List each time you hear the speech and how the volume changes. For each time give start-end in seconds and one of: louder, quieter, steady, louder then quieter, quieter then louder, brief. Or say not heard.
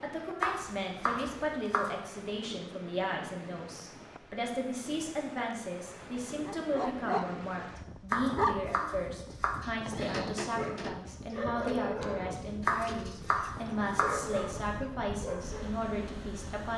0.0-16.7 steady.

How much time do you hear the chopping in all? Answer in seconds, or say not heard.
5 s.